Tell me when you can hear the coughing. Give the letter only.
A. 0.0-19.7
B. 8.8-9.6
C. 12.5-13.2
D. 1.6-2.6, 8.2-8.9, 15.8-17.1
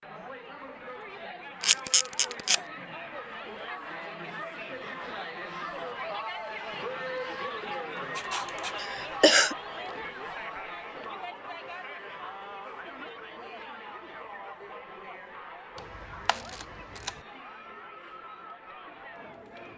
B.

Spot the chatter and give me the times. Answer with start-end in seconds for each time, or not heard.
0.0-19.7.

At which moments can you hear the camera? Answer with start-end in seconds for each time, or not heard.
1.6-2.6, 8.2-8.9, 15.8-17.1.